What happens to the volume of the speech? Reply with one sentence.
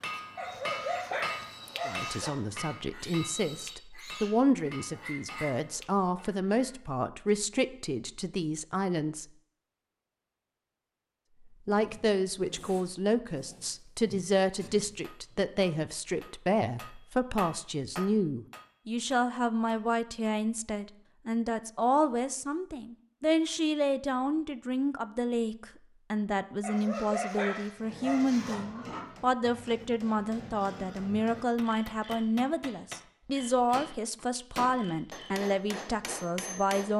The volume of the speech stays about the same.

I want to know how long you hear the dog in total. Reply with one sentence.
You can hear the dog for 4 seconds altogether.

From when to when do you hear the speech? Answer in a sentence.
The speech can be heard from 1.9 to 9.2 s and from 11.7 to 36.9 s.